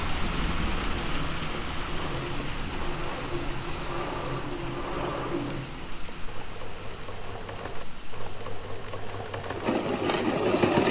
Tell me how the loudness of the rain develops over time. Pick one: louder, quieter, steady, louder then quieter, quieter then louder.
quieter.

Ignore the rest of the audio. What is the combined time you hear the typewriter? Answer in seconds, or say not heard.
not heard.